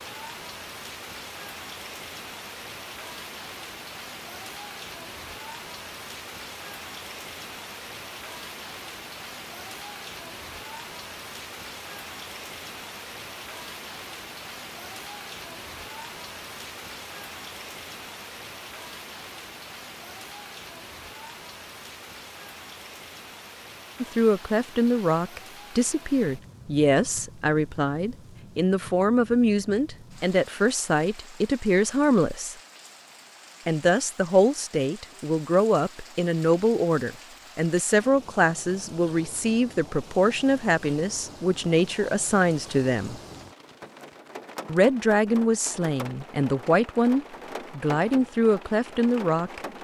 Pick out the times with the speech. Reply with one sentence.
The speech can be heard from 24.0 to 32.5 s, from 33.6 to 43.1 s and from 44.6 to 49.6 s.